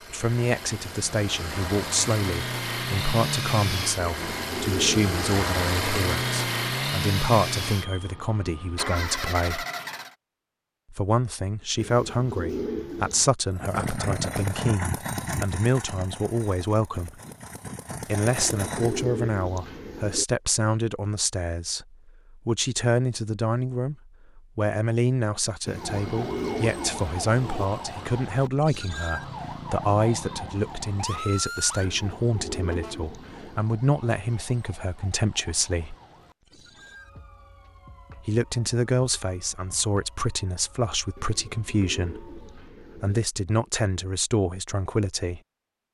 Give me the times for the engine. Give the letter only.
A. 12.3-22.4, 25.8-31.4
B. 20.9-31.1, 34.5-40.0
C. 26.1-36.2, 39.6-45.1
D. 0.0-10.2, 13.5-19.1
D.